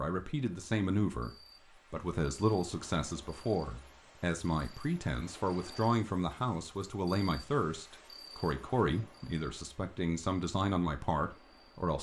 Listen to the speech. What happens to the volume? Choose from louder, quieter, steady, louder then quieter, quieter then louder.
steady.